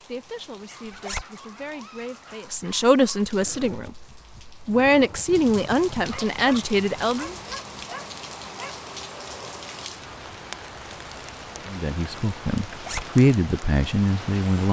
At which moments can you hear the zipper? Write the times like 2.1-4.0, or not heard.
0.8-1.2, 12.7-13.1.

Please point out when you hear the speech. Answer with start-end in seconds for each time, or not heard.
0.0-7.3, 11.7-14.6.